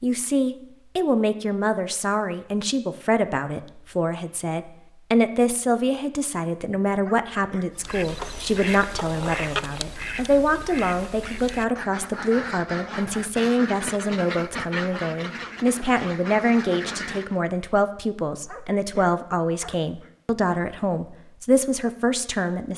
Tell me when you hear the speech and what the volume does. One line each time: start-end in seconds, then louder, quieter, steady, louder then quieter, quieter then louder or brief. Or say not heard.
0.0-22.7 steady.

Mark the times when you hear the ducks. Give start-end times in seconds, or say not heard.
7.7-17.4.